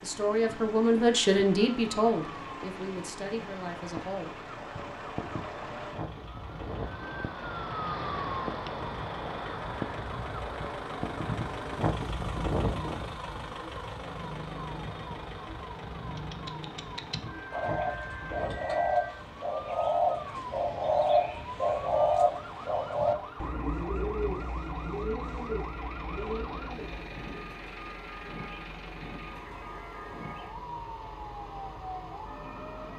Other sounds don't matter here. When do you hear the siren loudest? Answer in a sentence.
The loudest moment of the siren is at 8 seconds.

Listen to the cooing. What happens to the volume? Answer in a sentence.
The volume of the cooing goes up, then down.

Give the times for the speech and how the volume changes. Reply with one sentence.
You can hear the speech from 0.0 to 4.3 s, getting quieter.